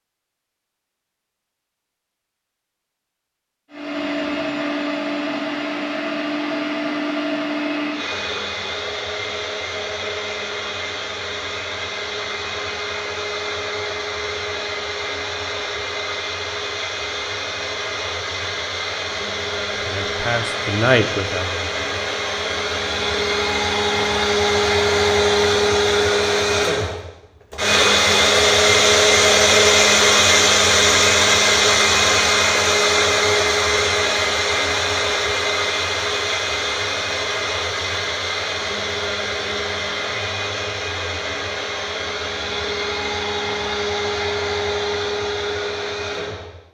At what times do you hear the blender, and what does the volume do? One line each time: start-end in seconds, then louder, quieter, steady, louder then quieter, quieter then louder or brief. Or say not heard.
3.7-46.6 louder then quieter.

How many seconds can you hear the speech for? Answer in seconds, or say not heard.
2 s.